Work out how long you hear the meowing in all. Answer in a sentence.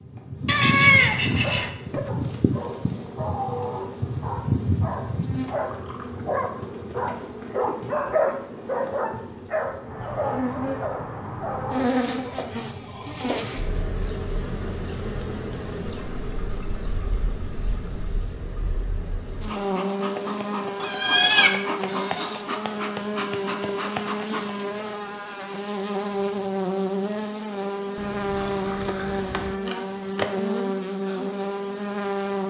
You can hear the meowing for 3 seconds altogether.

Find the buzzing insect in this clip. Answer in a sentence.
You can hear the buzzing insect from 0.0 to 32.4 s.